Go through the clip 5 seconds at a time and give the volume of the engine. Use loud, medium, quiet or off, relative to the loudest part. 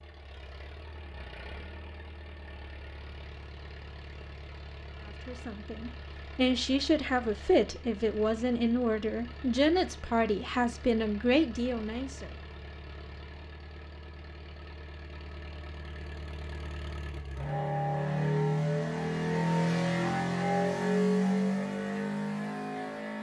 quiet, quiet, quiet, loud, loud.